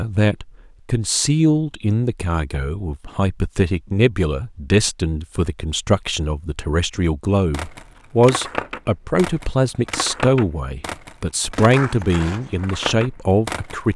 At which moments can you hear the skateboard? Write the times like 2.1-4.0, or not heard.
7.5-13.9.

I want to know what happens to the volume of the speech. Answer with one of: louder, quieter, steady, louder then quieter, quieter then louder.
steady.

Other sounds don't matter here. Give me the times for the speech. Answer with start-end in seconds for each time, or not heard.
0.0-13.9.